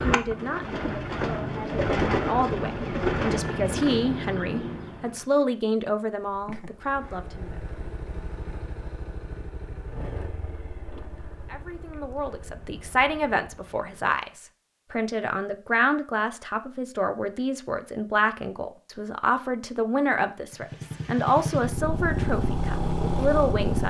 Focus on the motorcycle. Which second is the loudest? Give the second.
23 s.